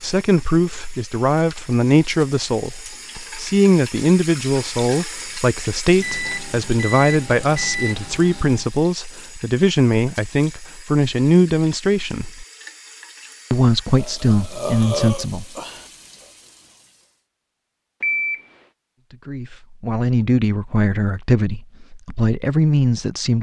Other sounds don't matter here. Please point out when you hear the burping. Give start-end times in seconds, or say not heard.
13.9-15.8.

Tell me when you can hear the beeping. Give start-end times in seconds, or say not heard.
6.0-8.7, 18.0-18.4.